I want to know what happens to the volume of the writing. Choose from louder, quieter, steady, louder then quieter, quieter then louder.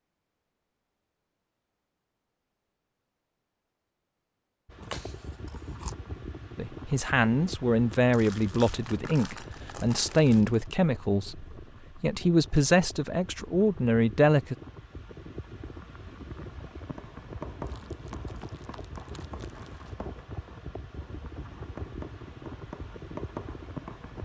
quieter then louder.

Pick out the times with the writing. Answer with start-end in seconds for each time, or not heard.
16.8-24.2.